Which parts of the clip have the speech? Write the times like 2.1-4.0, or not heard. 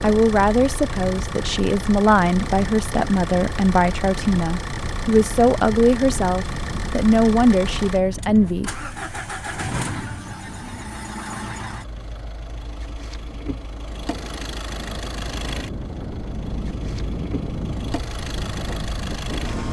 0.0-8.7.